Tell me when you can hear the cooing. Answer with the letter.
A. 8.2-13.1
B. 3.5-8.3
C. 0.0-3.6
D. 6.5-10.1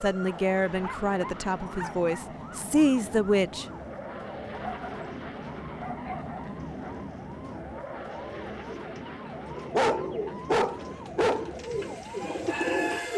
A.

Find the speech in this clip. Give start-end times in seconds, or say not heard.
0.0-3.6.